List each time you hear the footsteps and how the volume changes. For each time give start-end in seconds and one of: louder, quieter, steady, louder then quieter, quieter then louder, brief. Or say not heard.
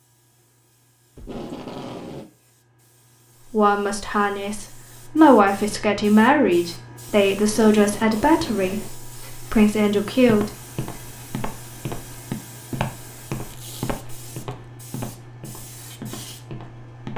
10.2-17.1 louder then quieter.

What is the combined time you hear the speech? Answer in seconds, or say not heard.
7 s.